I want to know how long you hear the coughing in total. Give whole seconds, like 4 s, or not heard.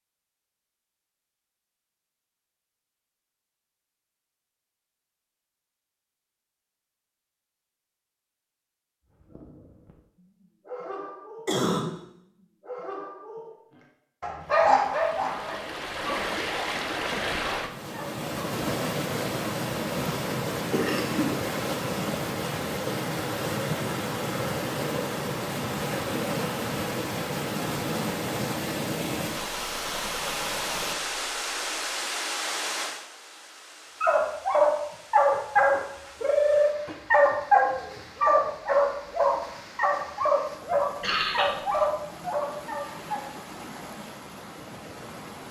2 s.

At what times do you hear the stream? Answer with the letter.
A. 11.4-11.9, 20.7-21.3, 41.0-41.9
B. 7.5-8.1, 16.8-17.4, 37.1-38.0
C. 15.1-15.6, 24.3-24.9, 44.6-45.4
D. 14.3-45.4
D.